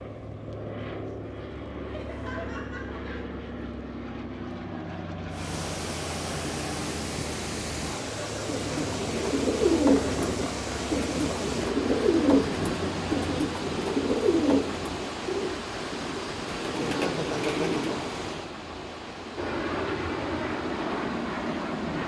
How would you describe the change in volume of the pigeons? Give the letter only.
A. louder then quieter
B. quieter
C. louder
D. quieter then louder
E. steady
B.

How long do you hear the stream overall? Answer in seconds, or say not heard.
17 s.